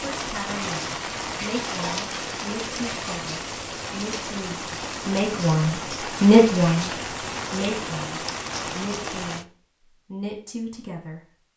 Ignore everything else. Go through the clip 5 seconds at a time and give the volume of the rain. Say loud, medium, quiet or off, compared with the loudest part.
loud, loud, off.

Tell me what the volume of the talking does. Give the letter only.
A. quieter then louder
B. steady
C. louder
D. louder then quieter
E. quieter
D.